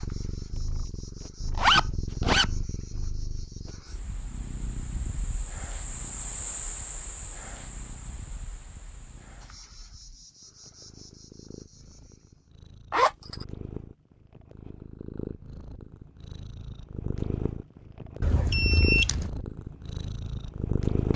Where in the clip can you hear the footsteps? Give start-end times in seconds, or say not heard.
not heard.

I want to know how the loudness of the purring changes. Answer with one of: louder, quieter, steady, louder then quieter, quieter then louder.
quieter then louder.